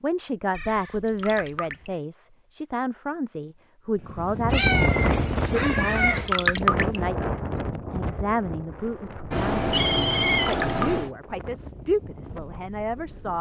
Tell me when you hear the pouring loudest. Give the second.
7 s.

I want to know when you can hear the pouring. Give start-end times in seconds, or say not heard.
1.1-1.9, 6.0-7.0, 10.4-10.9.